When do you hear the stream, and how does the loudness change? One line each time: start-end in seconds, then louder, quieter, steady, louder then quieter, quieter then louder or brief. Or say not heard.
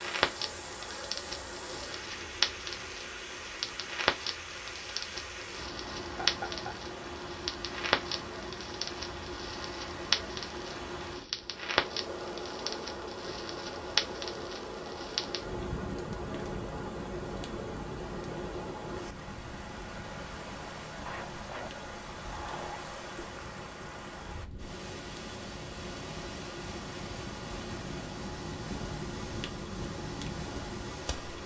0.0-31.4 steady.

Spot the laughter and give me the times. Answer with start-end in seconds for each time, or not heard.
6.0-7.0, 21.1-22.8.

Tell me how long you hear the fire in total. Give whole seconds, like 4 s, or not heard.
31 s.